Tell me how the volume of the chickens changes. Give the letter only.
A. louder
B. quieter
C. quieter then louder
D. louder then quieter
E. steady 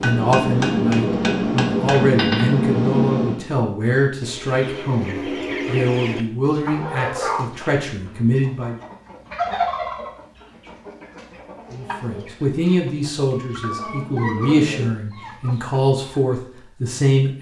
C.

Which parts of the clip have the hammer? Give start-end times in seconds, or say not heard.
0.0-3.5.